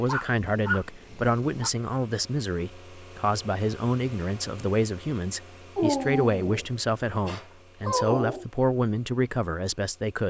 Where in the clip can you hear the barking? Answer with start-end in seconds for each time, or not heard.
0.1-1.7, 5.8-8.4.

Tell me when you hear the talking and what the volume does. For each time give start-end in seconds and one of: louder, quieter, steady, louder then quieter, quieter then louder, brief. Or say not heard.
0.0-10.2 steady.